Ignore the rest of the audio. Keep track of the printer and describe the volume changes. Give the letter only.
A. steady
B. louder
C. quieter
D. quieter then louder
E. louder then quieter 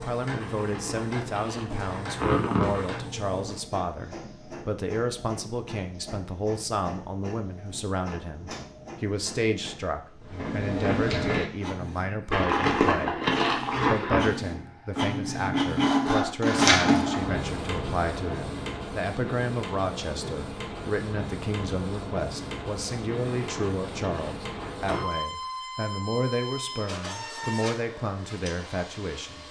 E.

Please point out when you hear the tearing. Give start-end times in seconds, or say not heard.
0.4-3.0, 12.3-14.2, 23.2-25.1.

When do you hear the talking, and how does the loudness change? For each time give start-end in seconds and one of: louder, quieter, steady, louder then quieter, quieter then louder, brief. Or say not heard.
0.0-29.4 steady.